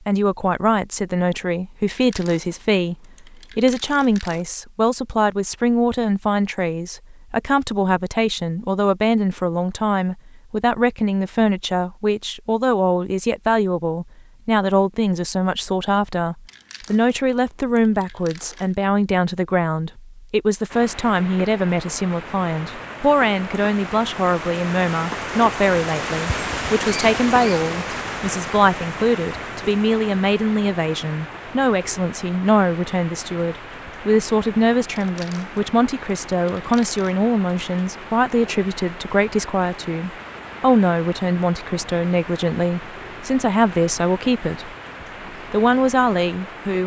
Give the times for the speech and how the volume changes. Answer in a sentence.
The speech can be heard from 0.1 to 44.7 s, at a steady volume; and briefly from 45.5 to 46.8 s.